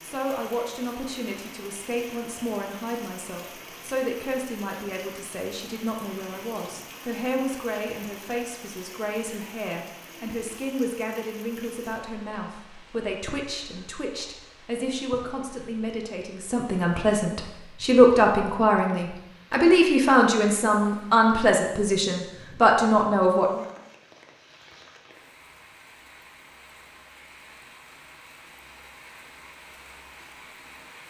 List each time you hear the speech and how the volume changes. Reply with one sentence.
The speech can be heard from 0.0 to 23.6 s, getting louder.